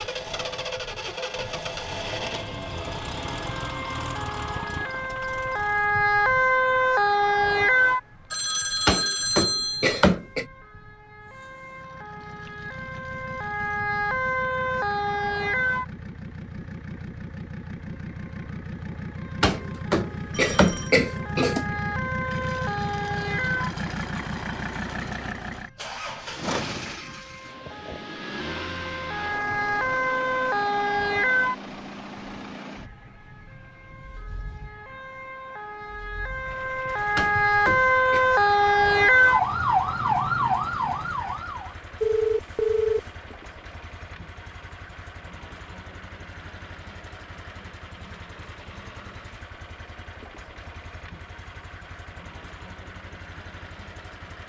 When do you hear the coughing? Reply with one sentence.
The coughing can be heard from 8.8 to 10.4 s, from 19.4 to 21.6 s and from 37.1 to 38.2 s.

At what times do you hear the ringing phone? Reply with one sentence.
The ringing phone can be heard from 8.3 to 10.1 s, from 20.3 to 20.9 s and from 42.0 to 43.0 s.